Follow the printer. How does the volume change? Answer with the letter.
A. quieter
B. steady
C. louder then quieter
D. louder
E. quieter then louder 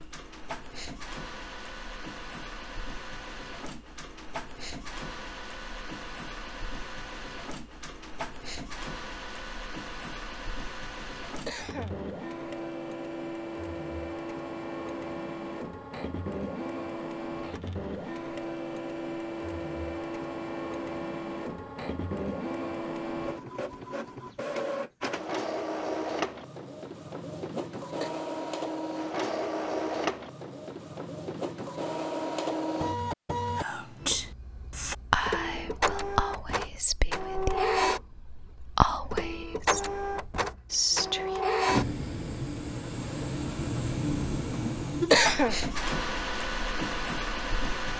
D.